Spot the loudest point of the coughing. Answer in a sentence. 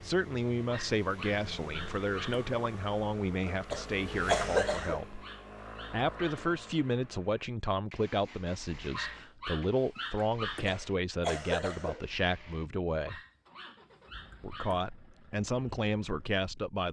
The volume of the coughing peaks at 4 seconds.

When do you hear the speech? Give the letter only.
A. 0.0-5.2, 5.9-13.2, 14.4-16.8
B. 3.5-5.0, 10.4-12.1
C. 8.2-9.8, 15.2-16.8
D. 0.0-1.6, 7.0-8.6
A.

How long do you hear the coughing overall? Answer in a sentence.
The coughing can be heard for 3 seconds in total.